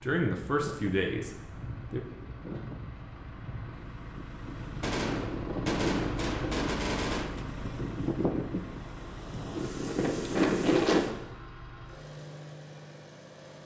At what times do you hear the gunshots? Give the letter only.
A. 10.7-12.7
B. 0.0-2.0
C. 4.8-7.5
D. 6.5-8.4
C.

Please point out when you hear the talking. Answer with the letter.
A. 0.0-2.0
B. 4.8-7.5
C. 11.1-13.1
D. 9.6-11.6
A.